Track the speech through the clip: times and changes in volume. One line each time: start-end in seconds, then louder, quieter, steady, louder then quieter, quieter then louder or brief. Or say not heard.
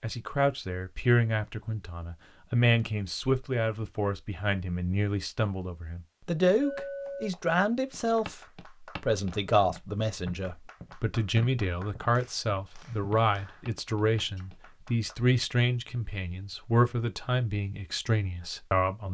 0.0-19.0 steady.